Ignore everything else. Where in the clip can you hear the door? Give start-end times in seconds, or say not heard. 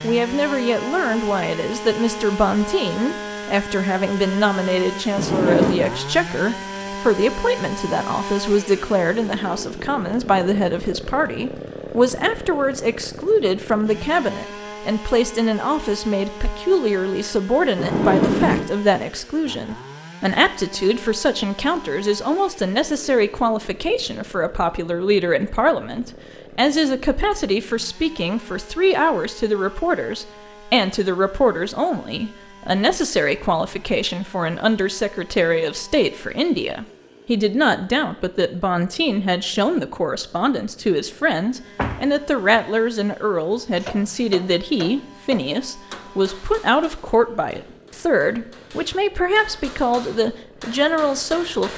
5.2-6.0, 17.8-18.7, 41.8-42.6.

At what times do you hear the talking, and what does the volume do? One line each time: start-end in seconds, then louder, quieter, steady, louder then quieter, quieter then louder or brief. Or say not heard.
0.0-51.7 steady.